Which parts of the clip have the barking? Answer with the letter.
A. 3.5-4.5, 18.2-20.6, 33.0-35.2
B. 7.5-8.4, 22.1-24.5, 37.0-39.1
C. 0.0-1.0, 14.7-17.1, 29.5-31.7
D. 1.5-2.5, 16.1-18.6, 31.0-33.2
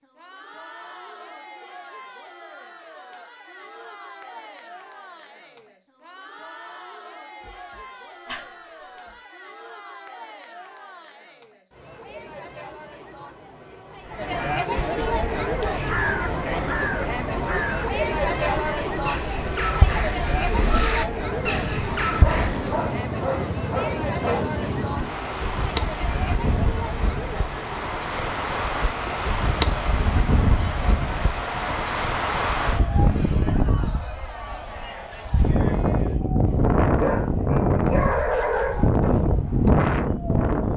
B.